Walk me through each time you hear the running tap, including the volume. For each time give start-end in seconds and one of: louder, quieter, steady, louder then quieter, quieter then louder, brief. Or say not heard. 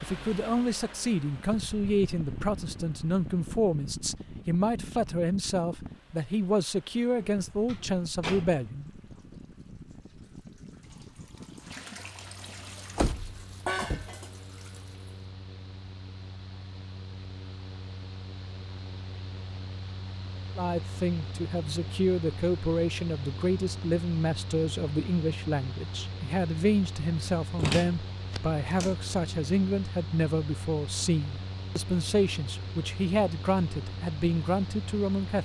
8.8-15.1 louder.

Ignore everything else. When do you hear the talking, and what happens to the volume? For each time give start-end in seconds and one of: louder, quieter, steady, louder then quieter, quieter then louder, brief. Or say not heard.
0.0-8.9 steady
20.6-35.4 steady.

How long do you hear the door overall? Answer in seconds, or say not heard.
4 s.